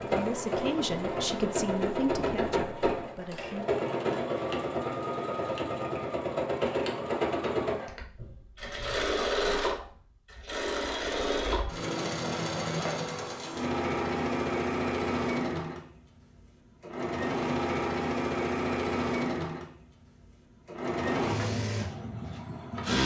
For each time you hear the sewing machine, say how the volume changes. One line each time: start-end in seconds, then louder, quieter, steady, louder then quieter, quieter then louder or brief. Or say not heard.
0.0-23.0 steady.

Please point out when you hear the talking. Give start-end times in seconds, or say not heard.
0.1-3.7.